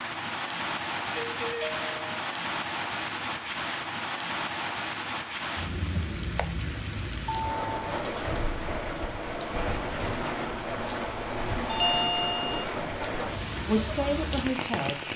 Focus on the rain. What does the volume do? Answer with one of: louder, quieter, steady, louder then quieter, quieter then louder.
steady.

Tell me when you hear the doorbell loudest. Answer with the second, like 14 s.
12 s.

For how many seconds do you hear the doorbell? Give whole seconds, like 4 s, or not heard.
3 s.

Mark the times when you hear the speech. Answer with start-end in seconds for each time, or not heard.
13.7-14.9.